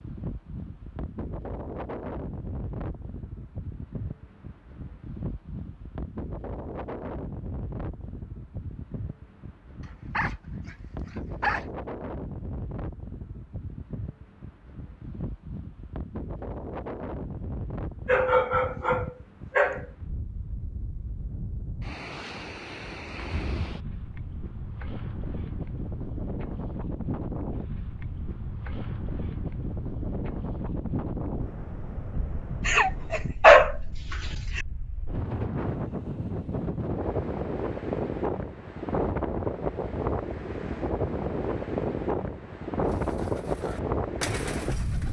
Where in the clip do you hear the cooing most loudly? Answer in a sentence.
The volume of the cooing peaks at 44 seconds.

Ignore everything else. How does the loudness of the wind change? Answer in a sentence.
The loudness of the wind goes up.